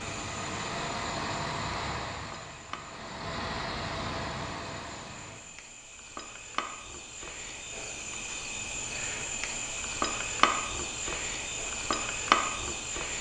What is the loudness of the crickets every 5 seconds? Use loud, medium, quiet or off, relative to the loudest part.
quiet, medium, loud.